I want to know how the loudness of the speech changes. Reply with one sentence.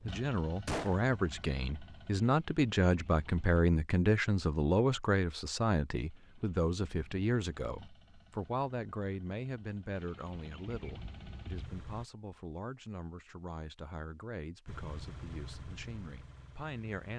The volume of the speech goes down.